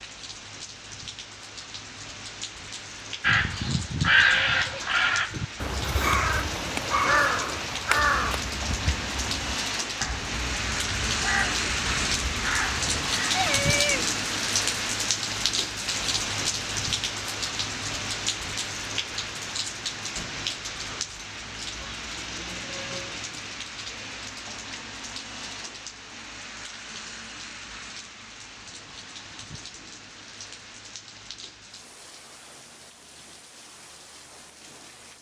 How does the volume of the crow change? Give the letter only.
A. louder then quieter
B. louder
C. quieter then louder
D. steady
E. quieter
E.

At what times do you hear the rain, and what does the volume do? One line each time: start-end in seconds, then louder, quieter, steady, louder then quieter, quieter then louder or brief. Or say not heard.
0.0-35.1 louder then quieter.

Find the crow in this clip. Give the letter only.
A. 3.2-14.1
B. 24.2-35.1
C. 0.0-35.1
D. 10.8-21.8
A.